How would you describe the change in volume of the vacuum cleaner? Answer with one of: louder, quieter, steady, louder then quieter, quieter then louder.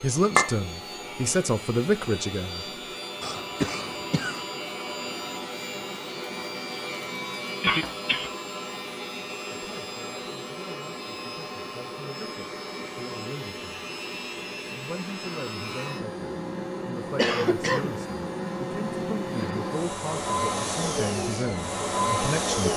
louder.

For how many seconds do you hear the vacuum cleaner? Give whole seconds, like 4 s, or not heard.
23 s.